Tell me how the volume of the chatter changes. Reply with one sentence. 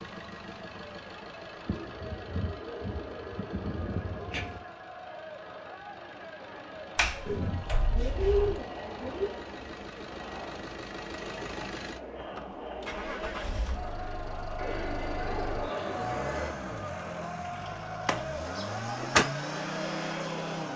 The volume of the chatter goes up.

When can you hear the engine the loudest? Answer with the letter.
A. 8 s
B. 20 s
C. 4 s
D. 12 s
B.